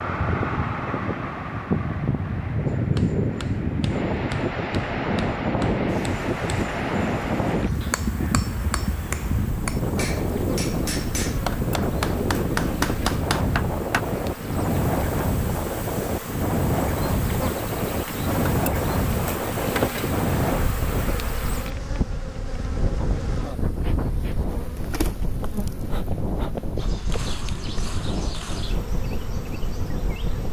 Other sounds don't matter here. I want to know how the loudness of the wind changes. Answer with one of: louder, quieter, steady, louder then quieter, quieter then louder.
quieter.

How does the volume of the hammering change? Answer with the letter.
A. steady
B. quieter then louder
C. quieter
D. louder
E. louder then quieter
D.